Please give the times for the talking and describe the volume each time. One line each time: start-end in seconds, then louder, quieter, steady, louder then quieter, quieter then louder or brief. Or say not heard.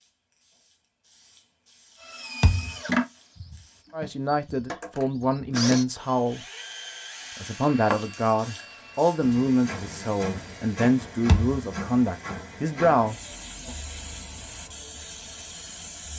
3.9-6.5 brief
7.4-13.8 steady.